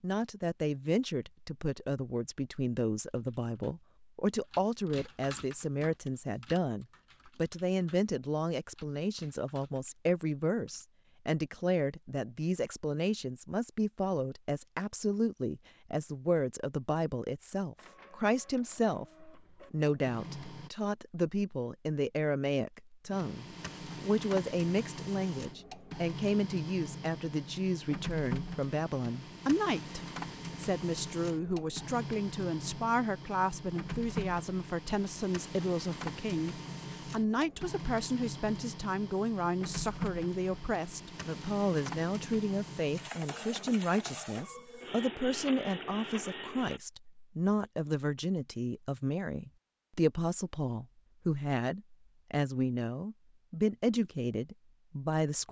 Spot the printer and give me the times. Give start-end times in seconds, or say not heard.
17.8-20.7, 23.1-46.8.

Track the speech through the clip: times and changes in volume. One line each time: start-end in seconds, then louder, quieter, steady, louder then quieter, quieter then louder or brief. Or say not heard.
0.0-55.4 steady.